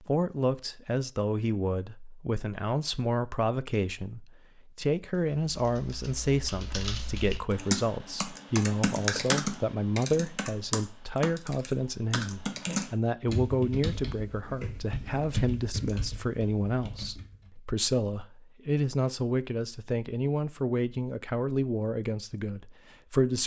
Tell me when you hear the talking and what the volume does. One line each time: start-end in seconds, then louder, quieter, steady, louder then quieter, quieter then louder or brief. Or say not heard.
0.0-23.4 steady.